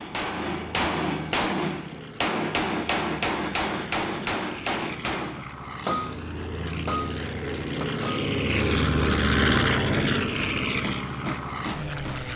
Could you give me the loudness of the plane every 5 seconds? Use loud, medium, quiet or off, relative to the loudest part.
quiet, loud, loud.